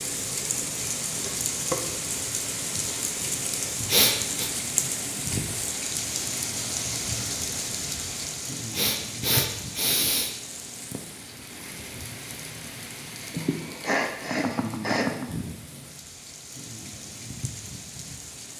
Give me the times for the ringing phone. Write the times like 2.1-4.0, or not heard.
not heard.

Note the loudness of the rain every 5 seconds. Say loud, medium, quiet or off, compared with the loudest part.
loud, loud, medium, medium.